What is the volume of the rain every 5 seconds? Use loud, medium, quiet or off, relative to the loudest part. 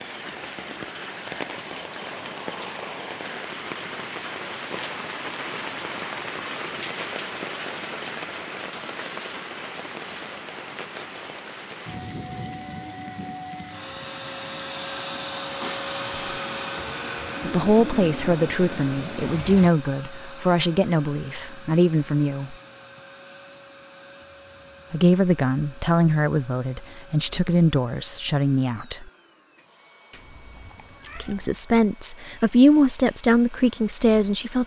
loud, loud, medium, loud, off, off, off.